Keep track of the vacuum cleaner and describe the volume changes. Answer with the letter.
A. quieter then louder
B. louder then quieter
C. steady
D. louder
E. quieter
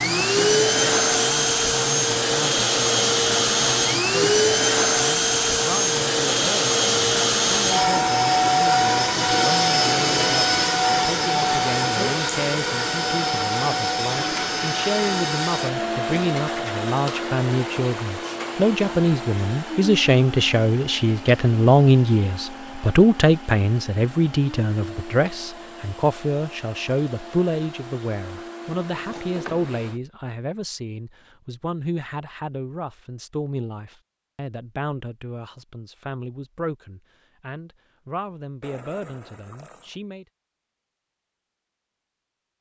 E.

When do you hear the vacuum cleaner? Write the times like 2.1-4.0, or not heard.
0.0-30.0.